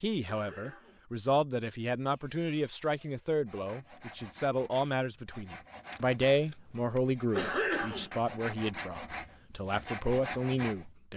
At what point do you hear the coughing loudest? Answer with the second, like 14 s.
8 s.